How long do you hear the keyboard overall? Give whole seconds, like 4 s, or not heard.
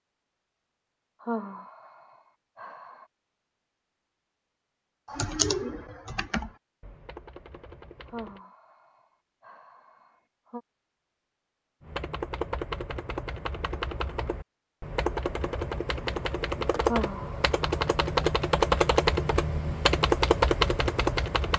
13 s.